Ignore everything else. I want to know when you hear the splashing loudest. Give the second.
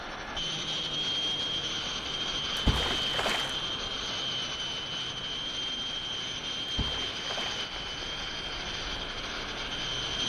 3 s.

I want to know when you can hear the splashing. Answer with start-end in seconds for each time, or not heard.
2.5-3.5, 6.7-7.7.